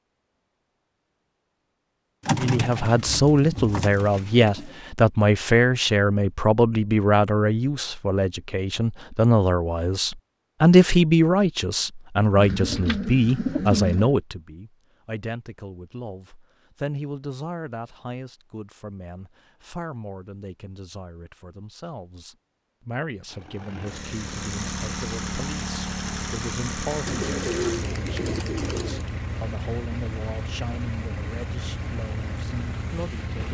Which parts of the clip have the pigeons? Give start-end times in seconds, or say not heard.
2.2-4.7, 12.3-14.2, 27.1-29.1.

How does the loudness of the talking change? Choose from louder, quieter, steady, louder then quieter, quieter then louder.
quieter.